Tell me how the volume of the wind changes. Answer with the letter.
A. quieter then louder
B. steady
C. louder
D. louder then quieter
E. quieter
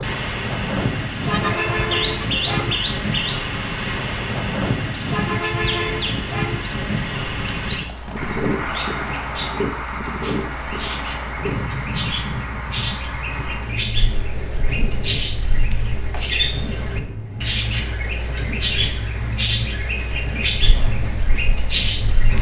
E.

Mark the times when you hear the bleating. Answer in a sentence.
The bleating can be heard from 1.3 to 2.8 s.